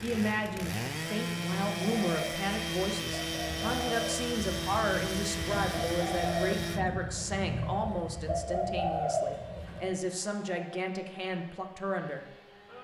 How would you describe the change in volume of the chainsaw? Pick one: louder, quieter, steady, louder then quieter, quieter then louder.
quieter.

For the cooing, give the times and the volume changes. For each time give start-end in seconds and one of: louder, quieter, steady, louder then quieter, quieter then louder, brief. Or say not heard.
1.9-9.9 louder.